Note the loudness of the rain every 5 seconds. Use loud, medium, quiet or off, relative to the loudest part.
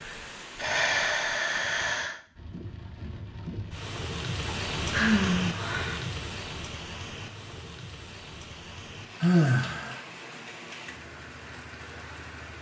loud, loud, medium.